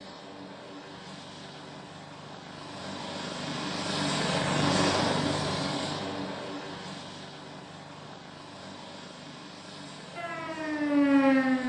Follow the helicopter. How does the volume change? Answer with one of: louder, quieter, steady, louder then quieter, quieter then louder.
louder then quieter.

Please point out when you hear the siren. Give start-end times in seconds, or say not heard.
10.2-11.6.